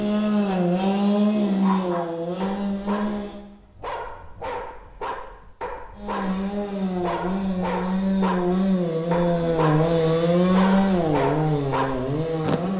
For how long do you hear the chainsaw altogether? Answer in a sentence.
The chainsaw can be heard for 10 seconds in total.